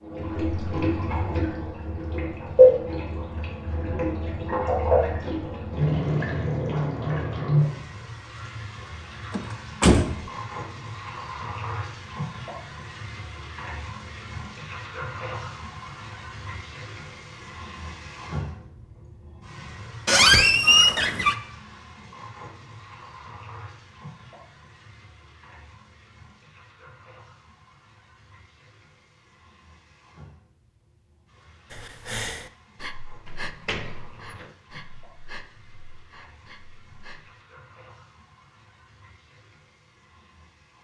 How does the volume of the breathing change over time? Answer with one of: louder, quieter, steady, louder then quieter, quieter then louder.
quieter.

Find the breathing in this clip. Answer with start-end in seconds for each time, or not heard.
31.7-37.3.